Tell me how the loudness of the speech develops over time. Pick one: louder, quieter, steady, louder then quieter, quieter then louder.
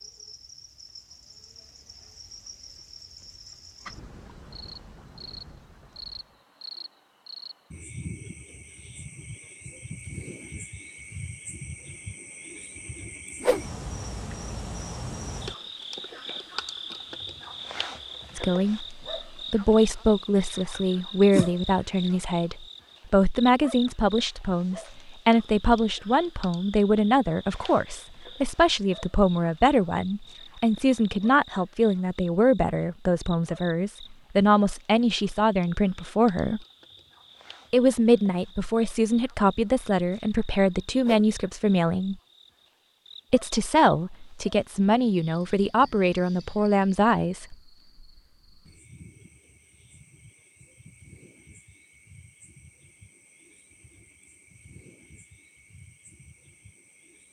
steady.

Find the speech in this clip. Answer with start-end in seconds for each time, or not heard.
18.4-36.6, 37.7-42.1, 43.3-47.5.